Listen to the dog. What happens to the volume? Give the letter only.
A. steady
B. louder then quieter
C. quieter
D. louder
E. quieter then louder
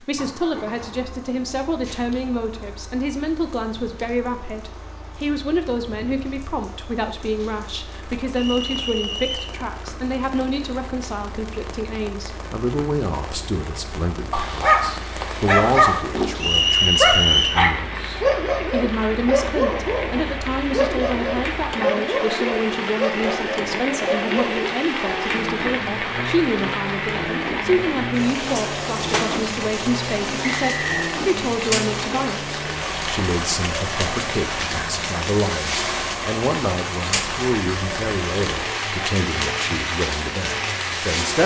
C.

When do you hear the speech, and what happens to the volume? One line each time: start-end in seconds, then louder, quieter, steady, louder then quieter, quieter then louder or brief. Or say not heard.
0.0-41.4 steady.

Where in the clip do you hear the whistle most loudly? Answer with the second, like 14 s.
17 s.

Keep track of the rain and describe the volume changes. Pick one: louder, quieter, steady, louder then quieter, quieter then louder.
louder.